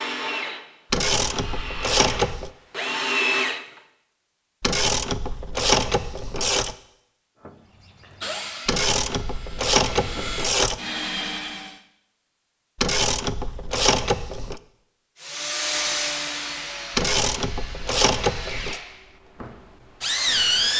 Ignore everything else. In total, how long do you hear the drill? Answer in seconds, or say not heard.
14 s.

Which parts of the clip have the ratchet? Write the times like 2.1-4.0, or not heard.
0.9-2.5, 4.6-6.8, 8.7-10.8, 12.8-14.6, 16.9-18.8.